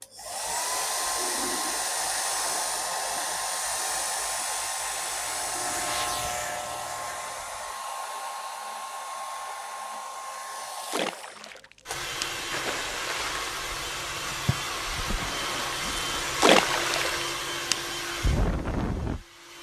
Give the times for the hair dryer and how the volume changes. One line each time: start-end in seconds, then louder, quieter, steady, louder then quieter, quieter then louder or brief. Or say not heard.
0.0-19.5 quieter then louder.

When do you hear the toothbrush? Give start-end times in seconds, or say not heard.
not heard.